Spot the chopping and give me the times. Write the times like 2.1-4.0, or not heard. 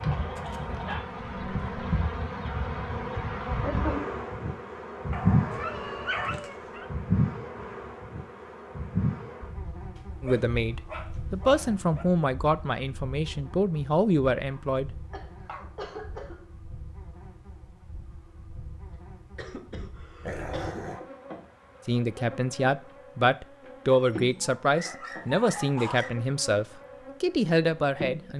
not heard.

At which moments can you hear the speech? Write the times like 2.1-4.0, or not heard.
10.2-15.0, 21.9-28.3.